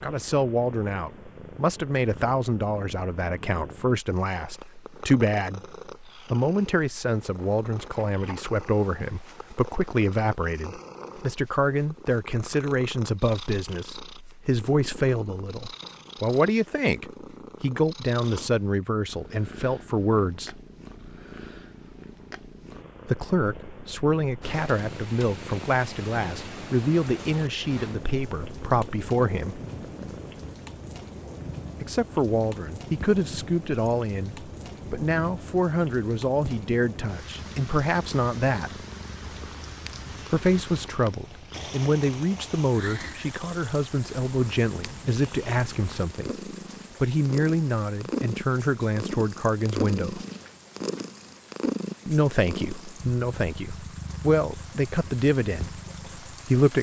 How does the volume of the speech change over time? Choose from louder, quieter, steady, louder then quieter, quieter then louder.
steady.